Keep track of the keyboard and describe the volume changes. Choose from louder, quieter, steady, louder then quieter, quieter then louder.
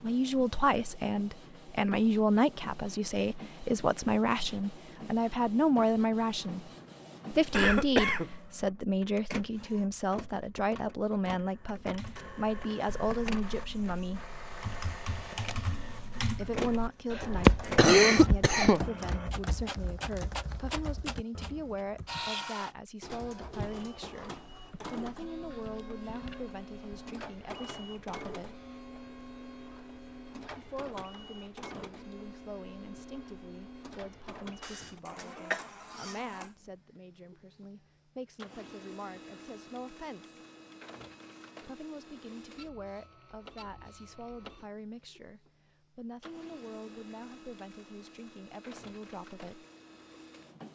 louder then quieter.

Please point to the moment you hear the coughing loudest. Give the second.
18 s.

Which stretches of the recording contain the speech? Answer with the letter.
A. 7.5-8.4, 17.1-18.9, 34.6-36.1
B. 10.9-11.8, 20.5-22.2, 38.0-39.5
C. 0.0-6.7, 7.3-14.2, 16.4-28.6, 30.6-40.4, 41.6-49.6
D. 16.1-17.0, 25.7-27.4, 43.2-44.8
C.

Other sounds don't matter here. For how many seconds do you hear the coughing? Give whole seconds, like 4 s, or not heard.
4 s.